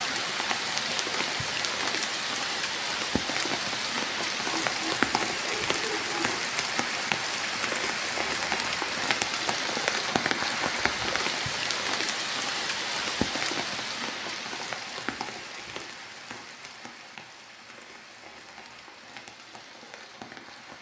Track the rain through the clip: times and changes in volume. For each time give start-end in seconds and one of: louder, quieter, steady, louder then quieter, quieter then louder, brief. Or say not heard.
0.0-20.7 quieter.